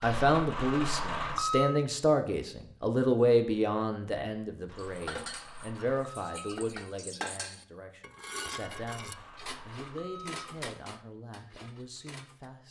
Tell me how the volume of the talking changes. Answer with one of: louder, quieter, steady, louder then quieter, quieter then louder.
quieter.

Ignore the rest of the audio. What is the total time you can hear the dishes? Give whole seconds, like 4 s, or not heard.
8 s.